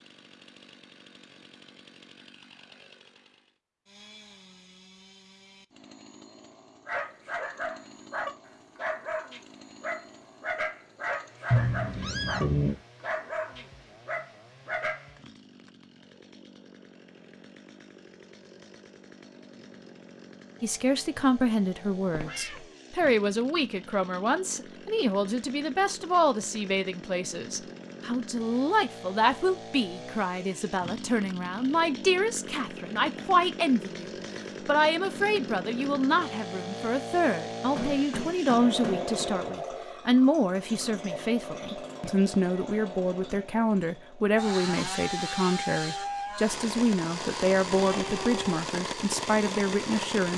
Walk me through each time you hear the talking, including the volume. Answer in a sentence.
You can hear the talking from 20.6 to 50.3 s, at a steady volume.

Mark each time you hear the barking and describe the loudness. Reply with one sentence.
The barking can be heard from 6.8 to 15.1 s, at a steady volume.